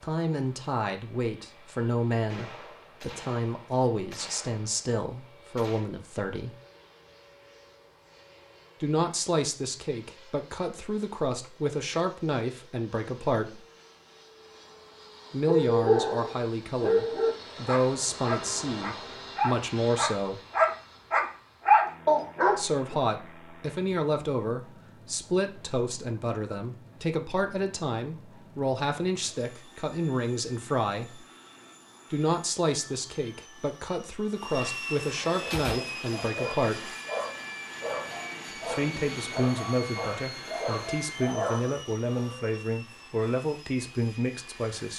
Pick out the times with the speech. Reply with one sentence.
The speech can be heard from 0.0 to 6.5 s, from 8.8 to 13.6 s, from 15.3 to 20.4 s, from 22.6 to 31.2 s, from 32.1 to 36.9 s and from 38.5 to 44.9 s.